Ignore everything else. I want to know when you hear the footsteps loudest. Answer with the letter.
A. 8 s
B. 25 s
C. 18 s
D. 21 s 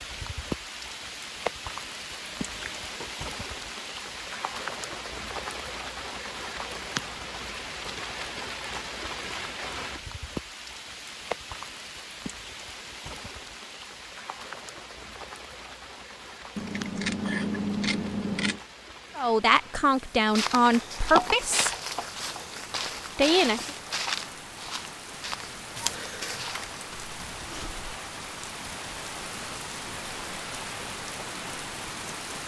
D.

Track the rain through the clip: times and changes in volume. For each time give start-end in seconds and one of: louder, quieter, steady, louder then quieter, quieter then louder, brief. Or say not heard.
0.0-32.4 quieter then louder.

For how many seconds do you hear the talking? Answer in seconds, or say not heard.
3 s.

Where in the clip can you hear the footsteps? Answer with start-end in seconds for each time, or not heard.
20.4-27.9.